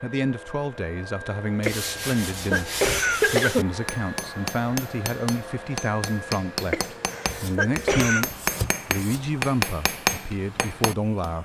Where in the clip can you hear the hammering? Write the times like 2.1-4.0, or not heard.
3.7-11.3.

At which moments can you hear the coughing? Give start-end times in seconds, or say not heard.
1.6-3.6, 6.7-8.2.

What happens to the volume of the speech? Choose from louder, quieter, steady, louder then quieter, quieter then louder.
steady.